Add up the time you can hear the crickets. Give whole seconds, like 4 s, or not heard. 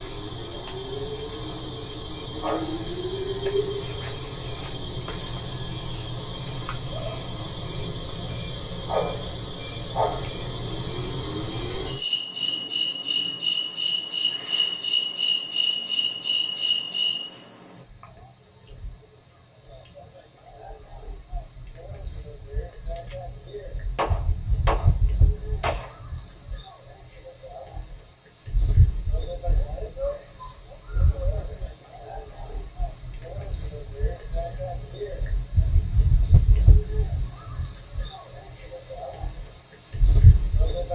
41 s.